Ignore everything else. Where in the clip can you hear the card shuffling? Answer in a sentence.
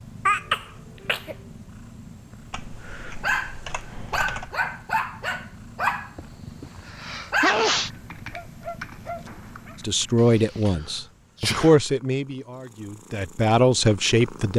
The card shuffling can't be heard in this clip.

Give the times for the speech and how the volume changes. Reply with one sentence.
You can hear the speech from 9.8 to 14.5 s, getting quieter then louder.